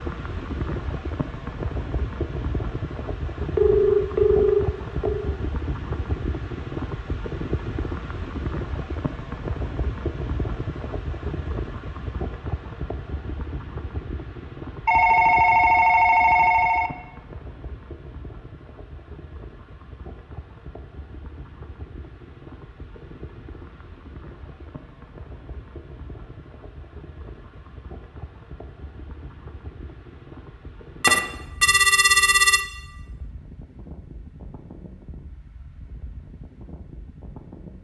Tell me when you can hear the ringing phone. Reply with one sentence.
The ringing phone can be heard from 3.5 to 5.3 s, from 14.8 to 16.9 s and from 31.0 to 32.6 s.